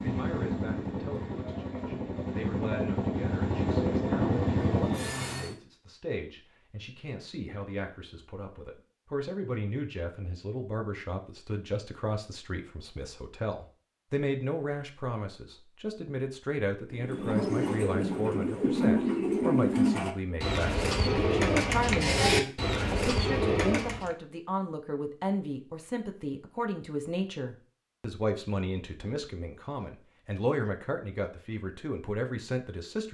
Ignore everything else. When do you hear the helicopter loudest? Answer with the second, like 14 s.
4 s.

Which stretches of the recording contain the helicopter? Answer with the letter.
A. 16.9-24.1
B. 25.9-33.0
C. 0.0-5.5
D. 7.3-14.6
C.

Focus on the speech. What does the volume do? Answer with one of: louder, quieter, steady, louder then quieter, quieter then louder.
louder.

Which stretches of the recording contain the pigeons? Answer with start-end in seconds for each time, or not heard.
16.9-24.1.